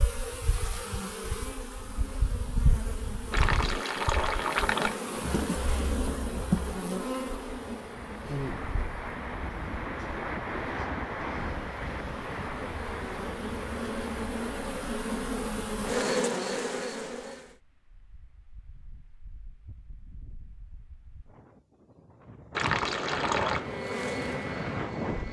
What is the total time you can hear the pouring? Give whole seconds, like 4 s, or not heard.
3 s.